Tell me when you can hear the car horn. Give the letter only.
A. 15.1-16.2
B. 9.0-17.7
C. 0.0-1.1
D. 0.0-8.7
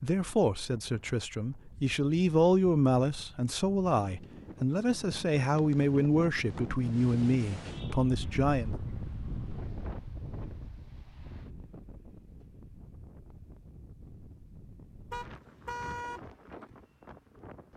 A.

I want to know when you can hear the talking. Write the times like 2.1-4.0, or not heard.
0.0-8.7.